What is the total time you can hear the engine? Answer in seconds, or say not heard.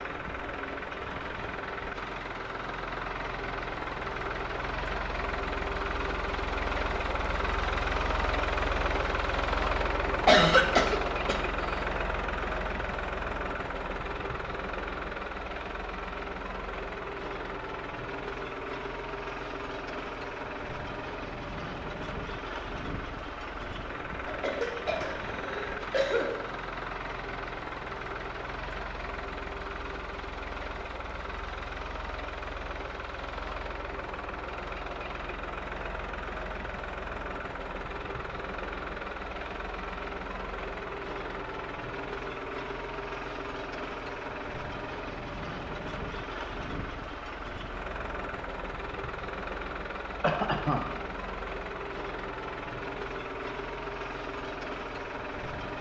56 s.